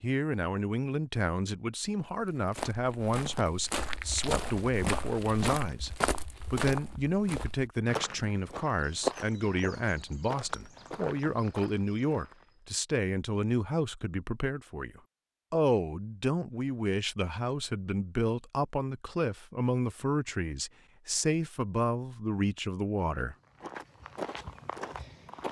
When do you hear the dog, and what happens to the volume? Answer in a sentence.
You can't hear the dog here.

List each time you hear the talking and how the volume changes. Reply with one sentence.
The talking can be heard from 0.0 to 23.4 s, at a steady volume.